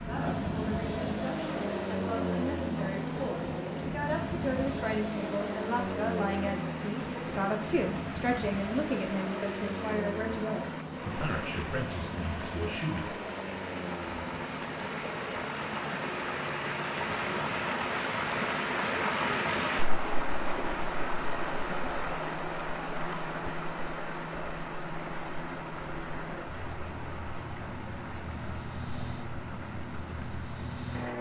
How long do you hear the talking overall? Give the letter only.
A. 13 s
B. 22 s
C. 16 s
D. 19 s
A.